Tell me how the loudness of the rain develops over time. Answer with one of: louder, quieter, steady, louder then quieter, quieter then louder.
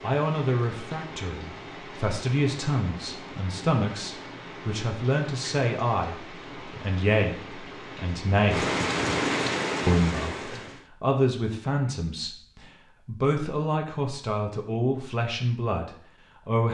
louder.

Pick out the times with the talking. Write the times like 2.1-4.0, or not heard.
0.0-8.7, 9.8-16.6.